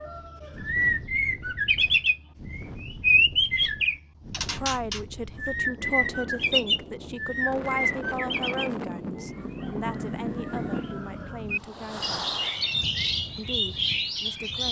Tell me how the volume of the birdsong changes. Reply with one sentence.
The loudness of the birdsong goes down, then up.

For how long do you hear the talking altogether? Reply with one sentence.
You can hear the talking for 9 seconds altogether.